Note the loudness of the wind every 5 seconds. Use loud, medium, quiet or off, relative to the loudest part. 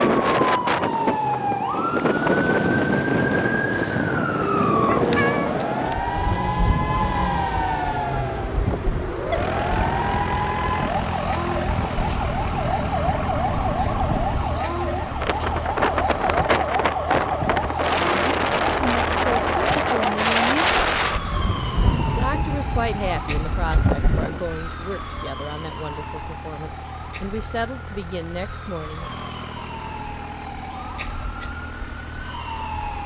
loud, medium, medium, loud, loud, off, off.